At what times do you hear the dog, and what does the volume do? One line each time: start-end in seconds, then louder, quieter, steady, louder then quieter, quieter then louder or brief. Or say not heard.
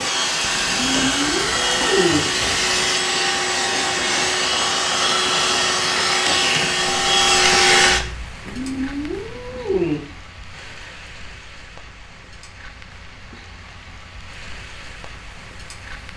not heard.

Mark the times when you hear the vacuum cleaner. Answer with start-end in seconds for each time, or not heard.
0.0-8.3.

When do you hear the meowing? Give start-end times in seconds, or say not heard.
0.7-2.2, 8.4-10.0.